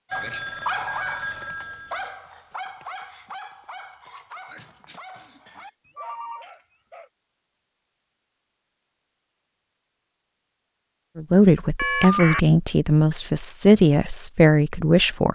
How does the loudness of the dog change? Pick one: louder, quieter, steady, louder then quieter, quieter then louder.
quieter.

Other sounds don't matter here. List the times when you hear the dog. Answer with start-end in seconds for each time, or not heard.
0.1-7.1.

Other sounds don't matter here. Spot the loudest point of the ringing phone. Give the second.
12 s.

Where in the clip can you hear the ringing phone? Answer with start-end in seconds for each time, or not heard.
0.1-2.1, 5.5-6.5, 11.8-12.4.